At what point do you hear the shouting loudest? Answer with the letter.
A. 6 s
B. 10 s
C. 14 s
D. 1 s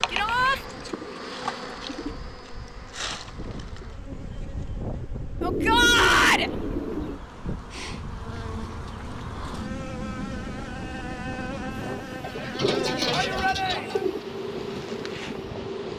A.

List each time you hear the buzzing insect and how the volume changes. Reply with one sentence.
The buzzing insect can be heard from 0.0 to 15.9 s, getting quieter then louder.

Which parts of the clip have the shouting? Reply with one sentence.
The shouting can be heard from 0.1 to 0.6 s, from 5.4 to 6.5 s and from 13.1 to 14.1 s.